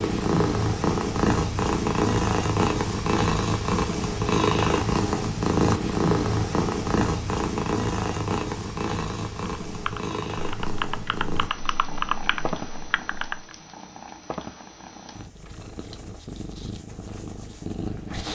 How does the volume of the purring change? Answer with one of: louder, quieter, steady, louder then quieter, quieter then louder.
quieter.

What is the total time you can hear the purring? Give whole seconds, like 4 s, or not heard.
18 s.